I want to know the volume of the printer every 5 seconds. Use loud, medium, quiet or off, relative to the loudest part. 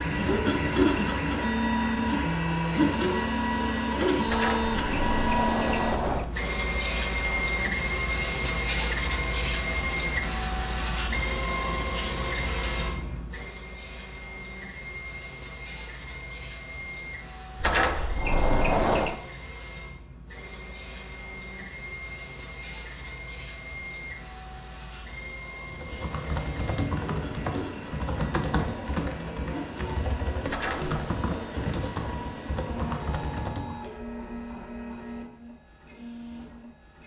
loud, loud, medium, quiet, quiet, quiet, quiet, quiet.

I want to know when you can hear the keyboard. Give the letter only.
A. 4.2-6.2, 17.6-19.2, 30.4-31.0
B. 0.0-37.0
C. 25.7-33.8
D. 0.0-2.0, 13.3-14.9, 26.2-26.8
C.